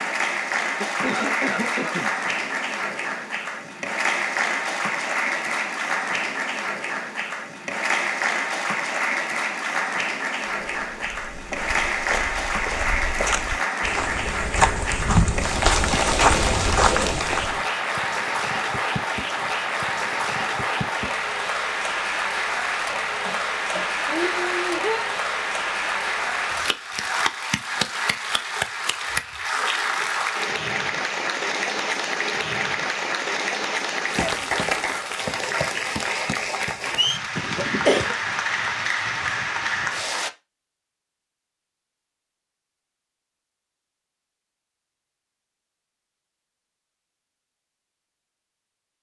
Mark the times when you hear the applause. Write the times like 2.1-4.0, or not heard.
0.0-40.3.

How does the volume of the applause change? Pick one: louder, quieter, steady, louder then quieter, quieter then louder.
steady.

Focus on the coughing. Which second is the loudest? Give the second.
38 s.